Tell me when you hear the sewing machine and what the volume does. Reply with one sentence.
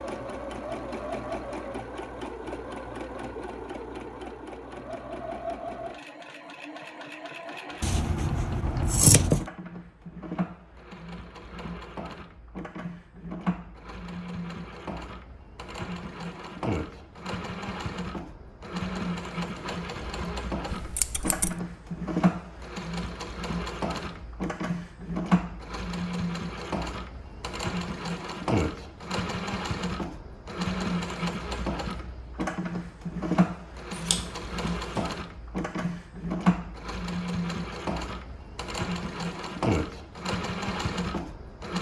You can hear the sewing machine from 0.0 to 41.7 s, getting louder.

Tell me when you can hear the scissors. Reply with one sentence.
You can hear the scissors from 7.8 to 9.4 s, from 20.6 to 21.6 s and from 34.0 to 35.0 s.